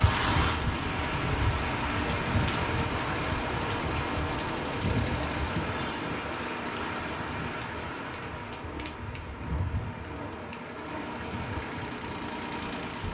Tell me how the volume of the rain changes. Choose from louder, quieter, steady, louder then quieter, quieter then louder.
quieter.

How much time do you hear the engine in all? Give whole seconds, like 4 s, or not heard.
13 s.